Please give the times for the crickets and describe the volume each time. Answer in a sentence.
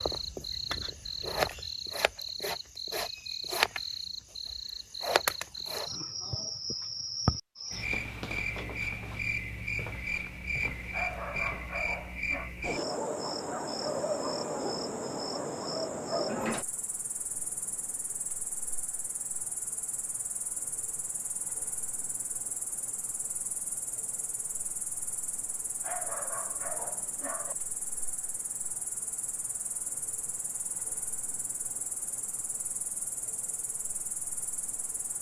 The crickets can be heard from 0.0 to 35.1 s, getting quieter.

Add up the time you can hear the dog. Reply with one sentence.
You can hear the dog for 3 seconds altogether.